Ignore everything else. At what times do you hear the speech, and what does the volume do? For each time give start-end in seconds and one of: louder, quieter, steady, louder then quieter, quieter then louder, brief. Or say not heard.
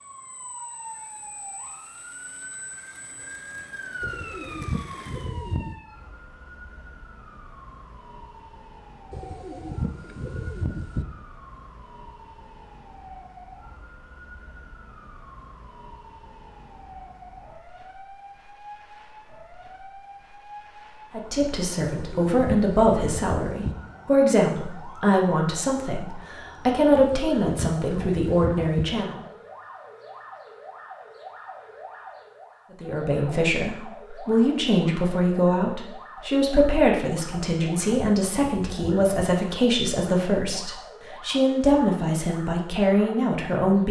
21.1-29.2 steady
32.8-43.8 steady.